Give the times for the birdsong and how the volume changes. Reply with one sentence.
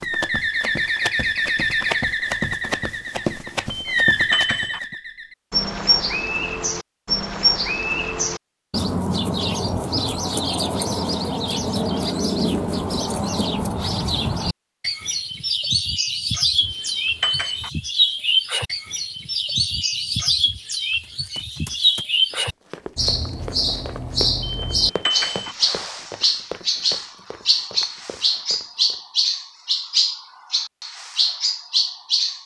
The birdsong can be heard from 0.0 to 32.4 s, at a steady volume.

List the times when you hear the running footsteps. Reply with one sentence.
The running footsteps can be heard from 0.0 to 5.0 s and from 21.0 to 29.0 s.